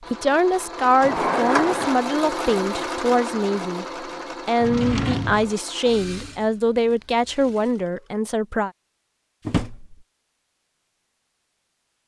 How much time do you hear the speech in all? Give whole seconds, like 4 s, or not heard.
9 s.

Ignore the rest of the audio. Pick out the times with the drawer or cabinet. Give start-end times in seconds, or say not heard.
1.0-2.0, 4.6-5.5, 9.4-9.9.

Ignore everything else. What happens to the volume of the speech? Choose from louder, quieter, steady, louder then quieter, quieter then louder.
steady.